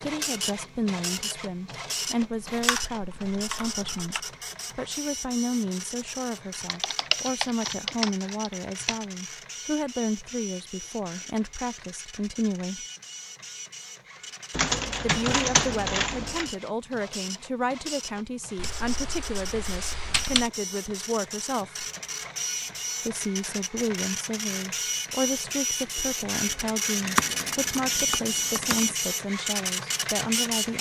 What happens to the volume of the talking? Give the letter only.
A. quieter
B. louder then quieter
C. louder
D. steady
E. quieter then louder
D.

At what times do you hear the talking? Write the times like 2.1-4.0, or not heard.
0.0-12.8, 15.0-21.9, 23.0-30.7.